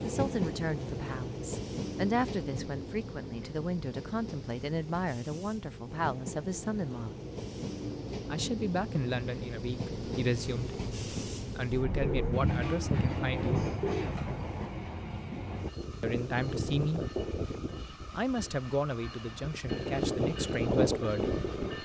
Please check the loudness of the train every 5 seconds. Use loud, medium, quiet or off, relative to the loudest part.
medium, medium, medium, medium, loud.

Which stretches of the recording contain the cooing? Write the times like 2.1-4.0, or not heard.
11.9-14.4.